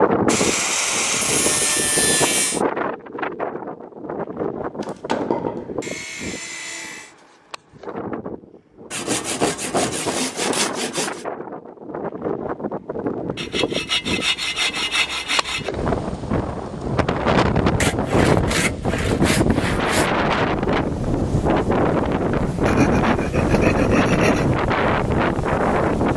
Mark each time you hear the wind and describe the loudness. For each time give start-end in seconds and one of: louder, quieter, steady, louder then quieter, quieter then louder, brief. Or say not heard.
0.0-26.1 quieter then louder.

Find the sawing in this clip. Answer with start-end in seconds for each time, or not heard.
0.2-2.6, 4.8-7.1, 8.9-11.2, 13.3-15.7, 17.8-20.1, 22.6-24.5.